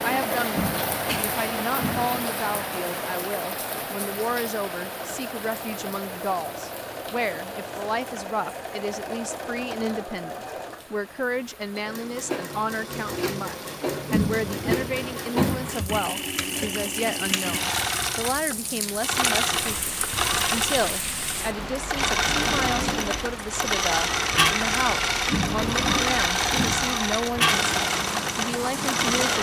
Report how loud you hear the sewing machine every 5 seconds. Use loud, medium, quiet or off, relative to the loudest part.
medium, medium, medium, loud, loud, loud.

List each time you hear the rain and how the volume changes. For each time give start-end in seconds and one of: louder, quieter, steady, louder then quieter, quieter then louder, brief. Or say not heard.
0.0-29.3 quieter then louder.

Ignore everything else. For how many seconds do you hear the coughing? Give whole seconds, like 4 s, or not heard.
5 s.